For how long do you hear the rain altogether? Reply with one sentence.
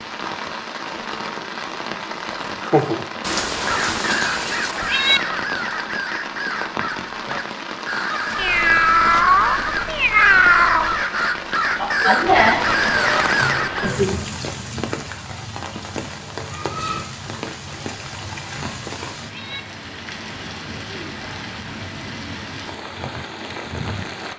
You can hear the rain for 24 seconds altogether.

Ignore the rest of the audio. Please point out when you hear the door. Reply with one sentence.
You can't hear the door here.